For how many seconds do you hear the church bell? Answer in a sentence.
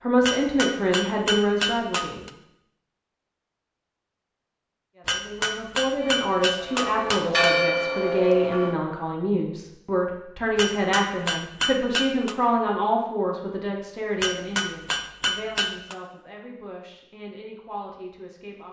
You can hear the church bell for 3 seconds altogether.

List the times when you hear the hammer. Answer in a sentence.
The hammer can be heard from 0.2 to 2.3 s, from 5.0 to 7.5 s, from 10.6 to 12.3 s and from 14.2 to 15.9 s.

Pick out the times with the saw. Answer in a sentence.
The saw can't be heard in this clip.